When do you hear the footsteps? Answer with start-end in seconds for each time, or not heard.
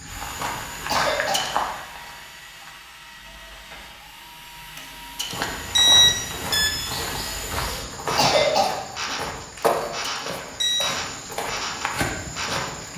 0.0-2.8, 5.2-12.9.